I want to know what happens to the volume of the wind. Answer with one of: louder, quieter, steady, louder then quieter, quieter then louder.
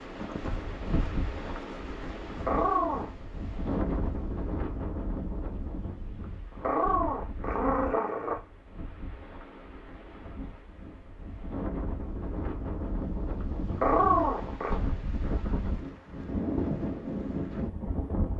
quieter then louder.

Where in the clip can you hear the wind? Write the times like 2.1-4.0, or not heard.
0.0-18.3.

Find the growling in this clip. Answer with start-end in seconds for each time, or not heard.
2.5-3.1, 6.6-8.4, 13.8-14.8.